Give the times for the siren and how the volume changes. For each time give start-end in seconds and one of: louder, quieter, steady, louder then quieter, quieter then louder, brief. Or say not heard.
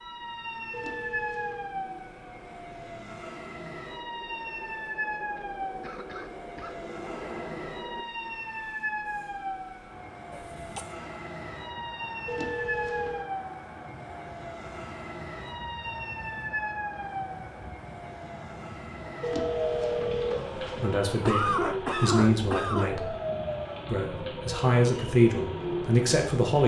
0.0-26.6 steady.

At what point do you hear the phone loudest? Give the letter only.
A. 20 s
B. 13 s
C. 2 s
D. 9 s
A.